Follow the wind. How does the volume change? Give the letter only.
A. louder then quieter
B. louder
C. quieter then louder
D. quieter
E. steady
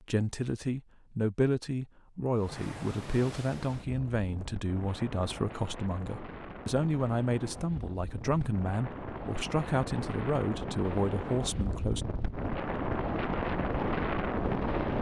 B.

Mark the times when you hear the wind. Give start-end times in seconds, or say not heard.
2.3-14.9.